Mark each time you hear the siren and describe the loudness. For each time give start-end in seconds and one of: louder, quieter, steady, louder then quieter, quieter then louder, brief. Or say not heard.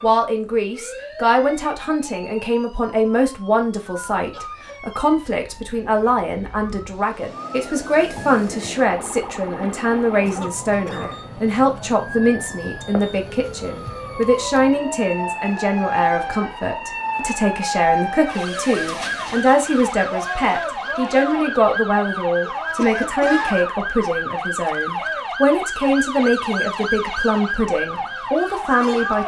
0.0-29.2 louder.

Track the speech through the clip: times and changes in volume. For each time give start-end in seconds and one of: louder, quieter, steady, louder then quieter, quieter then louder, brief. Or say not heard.
0.0-29.2 steady.